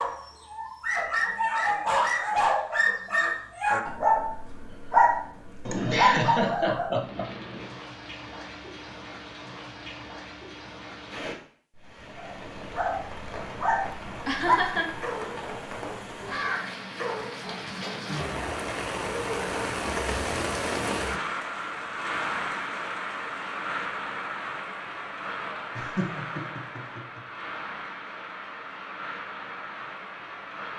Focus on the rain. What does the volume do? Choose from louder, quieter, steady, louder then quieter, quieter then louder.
louder then quieter.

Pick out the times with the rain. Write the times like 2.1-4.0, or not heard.
7.0-30.7.